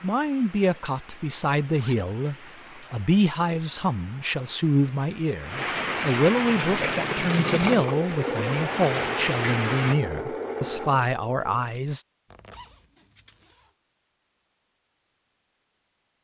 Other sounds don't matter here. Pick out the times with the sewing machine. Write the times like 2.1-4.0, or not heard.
6.4-11.7.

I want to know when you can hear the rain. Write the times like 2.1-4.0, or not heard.
0.0-9.9.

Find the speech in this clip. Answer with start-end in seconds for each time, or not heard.
0.0-12.1.